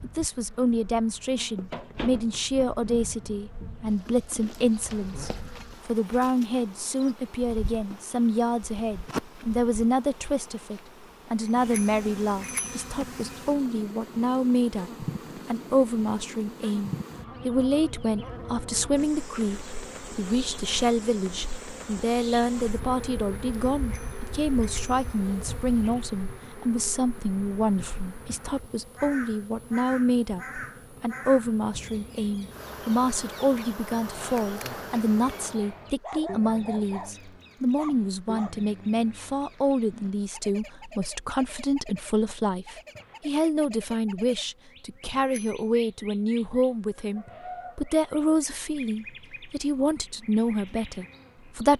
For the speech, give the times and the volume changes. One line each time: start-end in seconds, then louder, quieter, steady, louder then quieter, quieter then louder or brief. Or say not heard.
0.0-51.7 steady.